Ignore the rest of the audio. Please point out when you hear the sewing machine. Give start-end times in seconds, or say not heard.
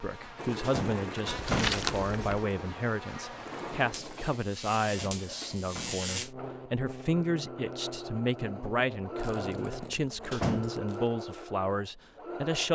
0.2-12.7.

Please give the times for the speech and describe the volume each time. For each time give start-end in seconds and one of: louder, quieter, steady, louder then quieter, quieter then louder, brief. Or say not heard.
0.0-12.7 steady.